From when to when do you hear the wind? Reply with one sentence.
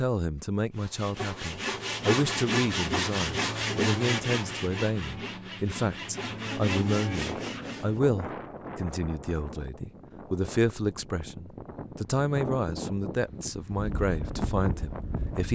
You can hear the wind from 7.1 to 15.4 s.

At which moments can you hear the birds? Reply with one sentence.
The birds can't be heard in this clip.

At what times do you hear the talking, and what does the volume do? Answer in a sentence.
You can hear the talking from 0.0 to 15.4 s, at a steady volume.